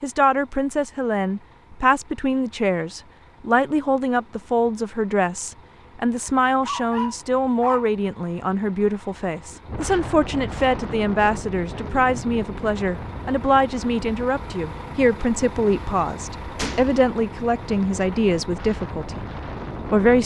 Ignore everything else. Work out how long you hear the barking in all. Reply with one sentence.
The barking can be heard for 2 seconds in total.